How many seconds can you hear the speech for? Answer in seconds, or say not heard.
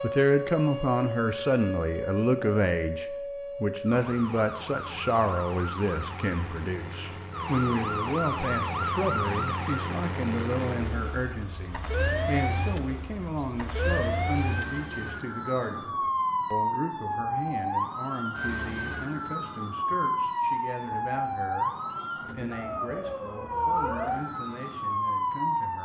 26 s.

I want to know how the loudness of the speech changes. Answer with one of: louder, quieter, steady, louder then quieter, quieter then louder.
quieter.